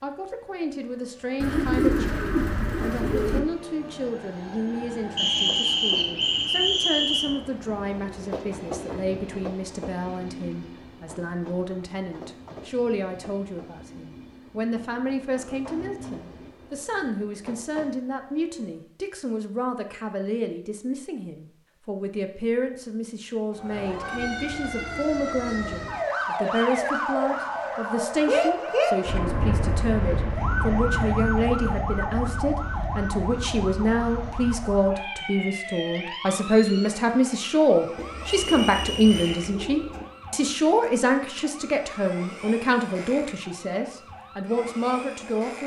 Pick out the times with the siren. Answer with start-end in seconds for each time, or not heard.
23.5-45.6.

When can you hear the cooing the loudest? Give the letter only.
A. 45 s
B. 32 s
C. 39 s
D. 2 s
D.